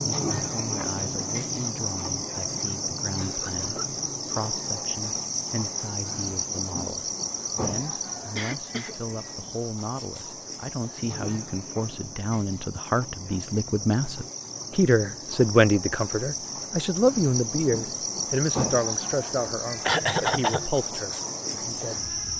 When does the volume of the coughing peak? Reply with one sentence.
The loudest moment of the coughing is at 20 seconds.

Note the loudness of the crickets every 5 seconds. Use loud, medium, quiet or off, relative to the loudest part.
loud, loud, medium, loud, loud.